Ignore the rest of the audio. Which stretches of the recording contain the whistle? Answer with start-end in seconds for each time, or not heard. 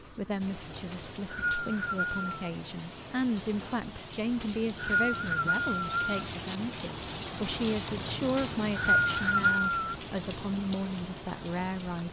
0.9-2.2, 4.4-6.2, 8.3-9.9.